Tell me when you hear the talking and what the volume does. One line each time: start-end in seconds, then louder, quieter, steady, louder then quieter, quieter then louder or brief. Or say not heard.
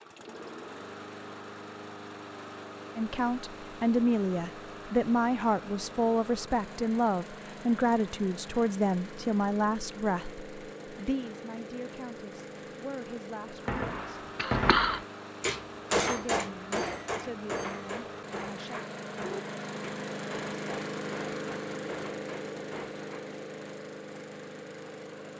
3.0-14.2 quieter
16.1-18.8 brief.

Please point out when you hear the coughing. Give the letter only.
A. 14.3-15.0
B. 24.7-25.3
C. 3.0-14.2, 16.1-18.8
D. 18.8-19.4
A.